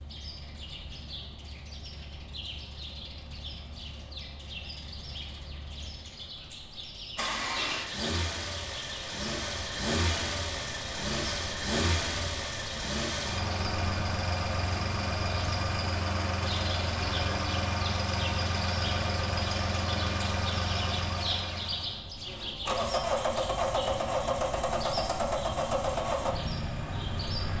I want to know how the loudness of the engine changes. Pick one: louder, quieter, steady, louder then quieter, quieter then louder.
louder.